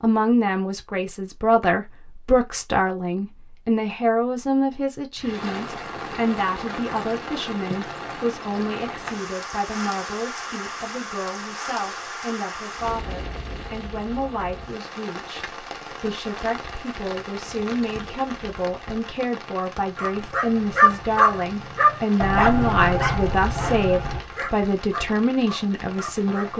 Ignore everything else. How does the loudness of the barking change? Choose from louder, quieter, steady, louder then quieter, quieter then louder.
quieter.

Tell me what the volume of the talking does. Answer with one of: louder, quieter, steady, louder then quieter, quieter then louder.
quieter then louder.